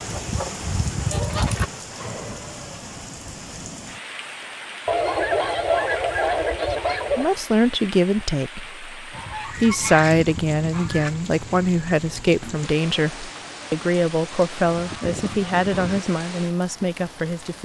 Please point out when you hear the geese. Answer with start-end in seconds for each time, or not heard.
0.1-1.7, 4.8-7.3, 9.1-11.2, 14.3-16.0.